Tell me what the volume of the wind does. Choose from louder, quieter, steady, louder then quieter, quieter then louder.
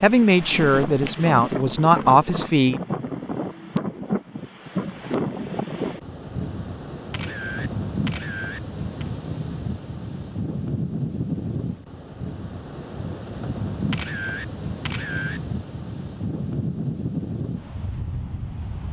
steady.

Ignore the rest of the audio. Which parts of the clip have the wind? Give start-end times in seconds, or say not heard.
0.0-18.8.